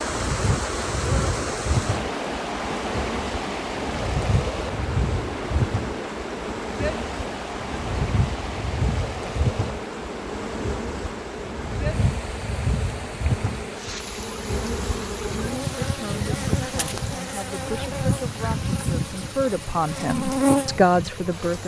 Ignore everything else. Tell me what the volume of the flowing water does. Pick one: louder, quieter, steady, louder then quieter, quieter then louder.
quieter.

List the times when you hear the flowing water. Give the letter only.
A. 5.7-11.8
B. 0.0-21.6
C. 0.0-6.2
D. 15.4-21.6
B.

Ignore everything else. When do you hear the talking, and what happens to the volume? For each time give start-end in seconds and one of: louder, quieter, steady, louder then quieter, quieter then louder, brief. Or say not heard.
15.4-21.6 louder.